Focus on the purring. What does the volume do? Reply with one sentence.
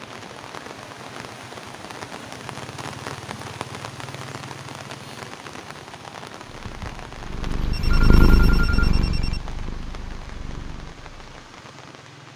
The volume of the purring goes up, then down.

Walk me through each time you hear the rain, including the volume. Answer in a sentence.
You can hear the rain from 0.0 to 12.3 s, getting quieter.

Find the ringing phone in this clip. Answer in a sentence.
The ringing phone can be heard from 7.7 to 9.4 s.